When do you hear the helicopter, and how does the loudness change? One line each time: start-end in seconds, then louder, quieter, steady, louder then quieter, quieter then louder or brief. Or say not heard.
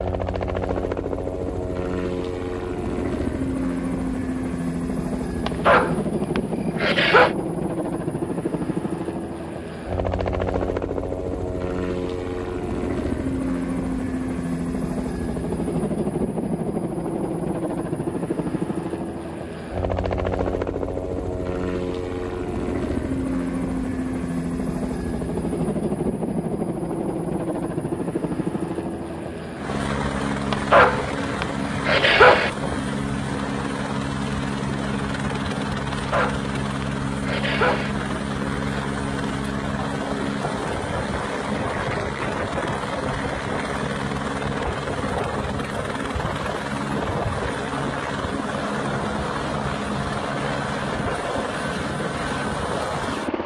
0.0-53.4 steady.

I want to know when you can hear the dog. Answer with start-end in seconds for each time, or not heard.
5.5-7.3, 30.5-32.5, 35.9-37.9.